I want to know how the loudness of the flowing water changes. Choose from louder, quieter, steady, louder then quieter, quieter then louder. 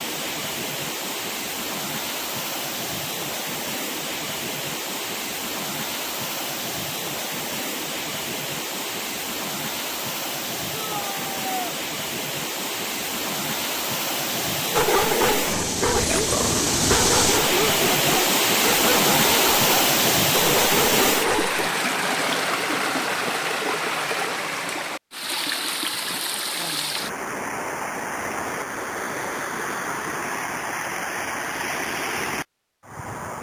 louder then quieter.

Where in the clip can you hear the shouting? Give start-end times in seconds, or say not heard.
10.8-11.8.